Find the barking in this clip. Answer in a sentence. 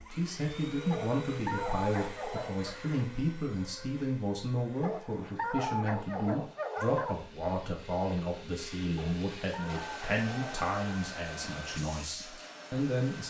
The barking can be heard from 0.9 to 2.8 s, from 4.8 to 7.2 s and from 8.9 to 11.1 s.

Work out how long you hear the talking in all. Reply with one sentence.
You can hear the talking for 13 seconds altogether.